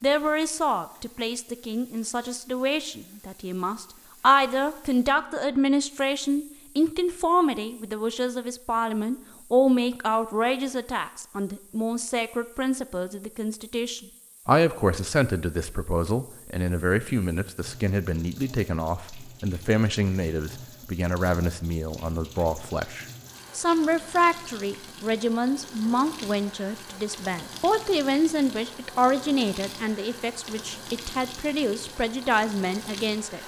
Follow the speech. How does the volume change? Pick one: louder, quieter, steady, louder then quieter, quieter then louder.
steady.